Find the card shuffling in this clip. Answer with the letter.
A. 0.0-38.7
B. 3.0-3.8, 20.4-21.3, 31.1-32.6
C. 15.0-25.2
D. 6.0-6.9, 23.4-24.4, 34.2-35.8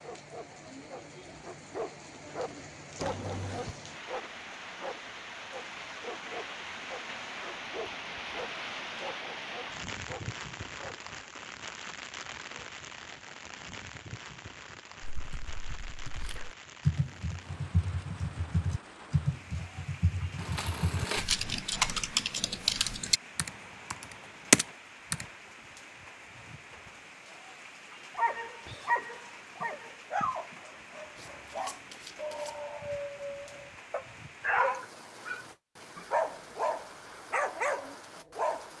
B.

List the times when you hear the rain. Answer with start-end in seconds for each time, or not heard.
0.0-38.7.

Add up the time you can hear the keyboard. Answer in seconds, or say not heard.
10 s.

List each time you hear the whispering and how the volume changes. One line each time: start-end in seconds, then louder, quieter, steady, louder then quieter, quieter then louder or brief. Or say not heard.
not heard.